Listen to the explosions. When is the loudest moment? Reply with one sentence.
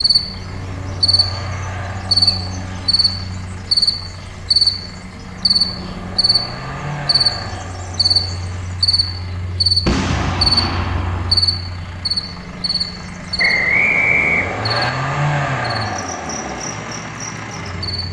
The volume of the explosions peaks at 10 seconds.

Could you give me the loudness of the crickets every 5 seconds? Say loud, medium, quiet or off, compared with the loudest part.
loud, loud, loud, quiet.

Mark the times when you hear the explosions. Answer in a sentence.
The explosions can be heard from 9.8 to 11.4 s.